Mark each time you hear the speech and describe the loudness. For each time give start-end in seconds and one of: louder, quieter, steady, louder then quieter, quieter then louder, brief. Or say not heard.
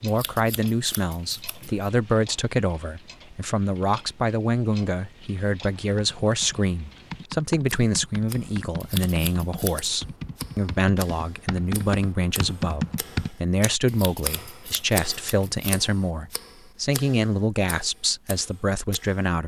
0.0-19.4 steady.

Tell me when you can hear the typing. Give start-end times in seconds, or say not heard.
5.8-13.3.